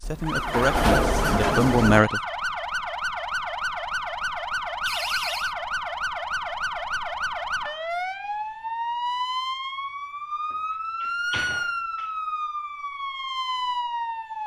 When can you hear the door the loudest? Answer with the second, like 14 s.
1 s.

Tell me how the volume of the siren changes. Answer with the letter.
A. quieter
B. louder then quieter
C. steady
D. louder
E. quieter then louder
C.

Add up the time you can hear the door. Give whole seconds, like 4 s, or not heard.
4 s.